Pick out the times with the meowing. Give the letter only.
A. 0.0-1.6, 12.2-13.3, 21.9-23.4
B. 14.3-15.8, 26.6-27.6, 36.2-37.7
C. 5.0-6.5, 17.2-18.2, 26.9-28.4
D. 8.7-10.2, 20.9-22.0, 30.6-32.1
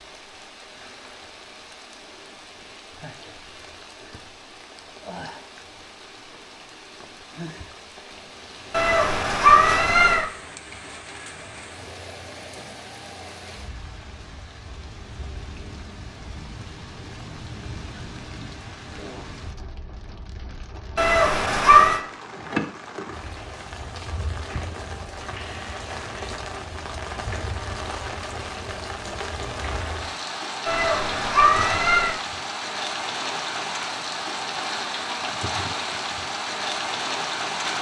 D.